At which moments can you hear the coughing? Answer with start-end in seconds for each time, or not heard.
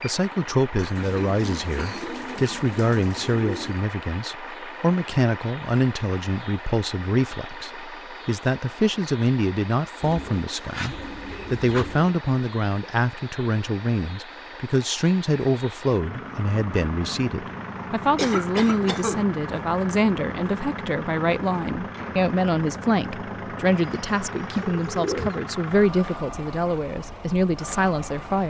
0.8-2.6, 18.1-19.6.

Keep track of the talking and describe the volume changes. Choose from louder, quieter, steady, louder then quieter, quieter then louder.
steady.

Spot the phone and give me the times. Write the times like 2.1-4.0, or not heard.
not heard.